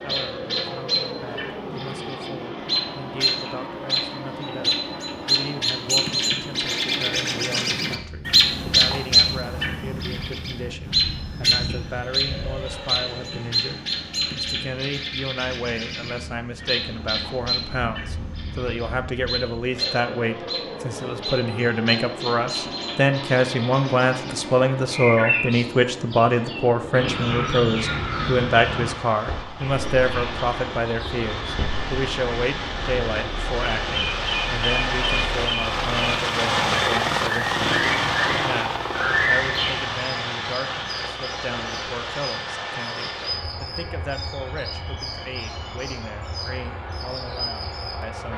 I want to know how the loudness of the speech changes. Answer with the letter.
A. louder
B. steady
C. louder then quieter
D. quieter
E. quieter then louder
C.